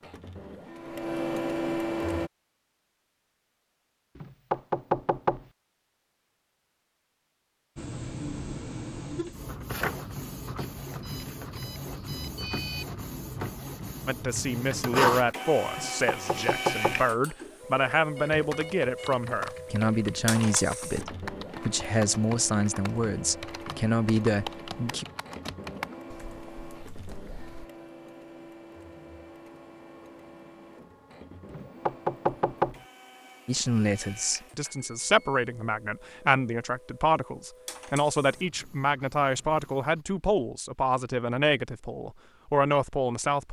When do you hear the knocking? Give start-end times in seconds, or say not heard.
4.2-5.5, 15.7-17.0, 31.5-32.8.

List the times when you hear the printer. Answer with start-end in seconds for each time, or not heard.
0.0-2.3, 7.8-40.0.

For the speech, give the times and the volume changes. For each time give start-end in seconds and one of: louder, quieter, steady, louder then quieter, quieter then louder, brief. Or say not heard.
14.1-25.1 steady
33.5-43.4 steady.